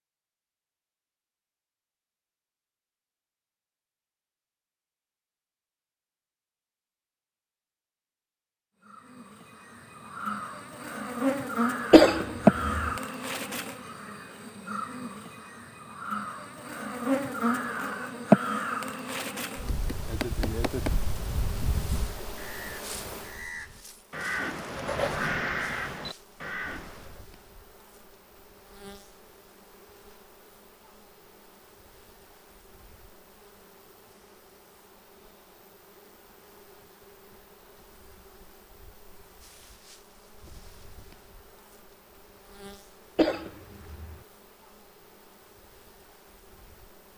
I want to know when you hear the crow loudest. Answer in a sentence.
The volume of the crow peaks at 25 seconds.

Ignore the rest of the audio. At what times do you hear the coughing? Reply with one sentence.
The coughing can be heard from 11.9 to 12.9 s and from 43.1 to 44.1 s.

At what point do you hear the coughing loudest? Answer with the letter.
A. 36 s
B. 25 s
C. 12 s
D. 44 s
C.